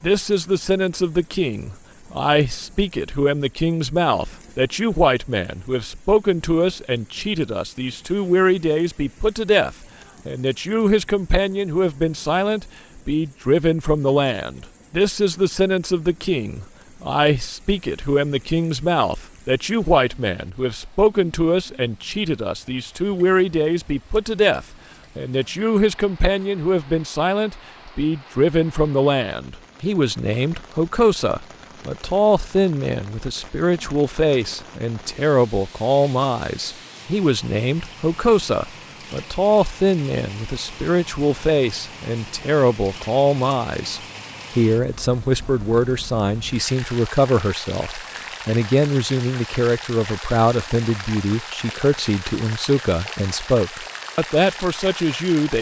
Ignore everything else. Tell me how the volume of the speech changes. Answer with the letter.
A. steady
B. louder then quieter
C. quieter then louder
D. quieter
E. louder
A.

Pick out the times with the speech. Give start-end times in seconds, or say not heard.
0.0-55.5.